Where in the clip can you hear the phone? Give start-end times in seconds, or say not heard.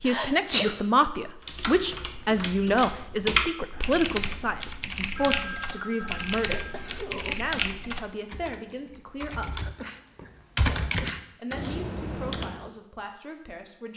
5.2-6.8.